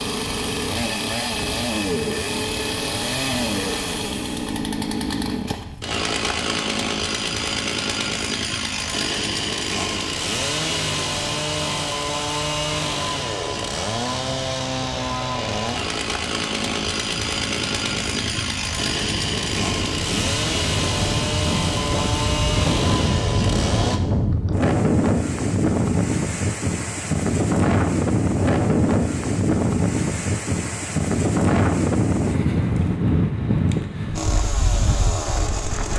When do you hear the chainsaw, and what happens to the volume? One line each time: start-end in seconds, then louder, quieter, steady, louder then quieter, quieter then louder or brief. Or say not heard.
0.0-24.0 steady
34.1-35.9 brief.